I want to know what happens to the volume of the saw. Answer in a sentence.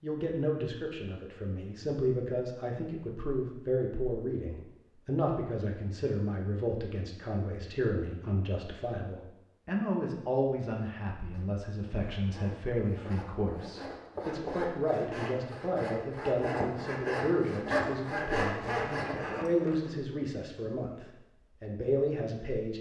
The volume of the saw goes up.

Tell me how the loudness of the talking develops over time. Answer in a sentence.
The loudness of the talking stays about the same.